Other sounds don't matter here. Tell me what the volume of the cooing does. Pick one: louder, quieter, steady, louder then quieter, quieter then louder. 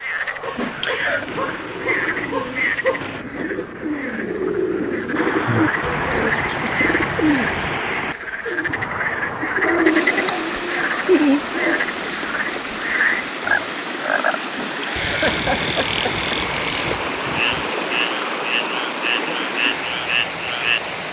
louder then quieter.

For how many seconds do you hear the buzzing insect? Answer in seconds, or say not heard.
not heard.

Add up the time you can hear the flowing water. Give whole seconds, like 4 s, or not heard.
16 s.